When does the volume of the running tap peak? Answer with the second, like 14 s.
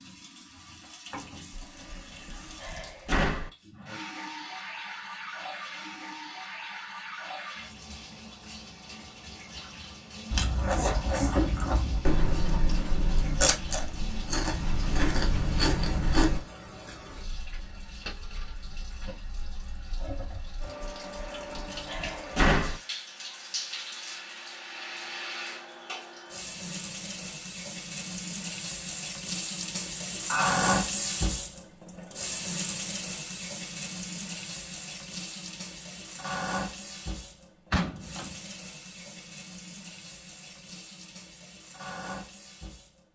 31 s.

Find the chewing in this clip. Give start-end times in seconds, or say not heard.
10.3-16.4.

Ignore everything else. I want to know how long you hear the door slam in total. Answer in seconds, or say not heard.
5 s.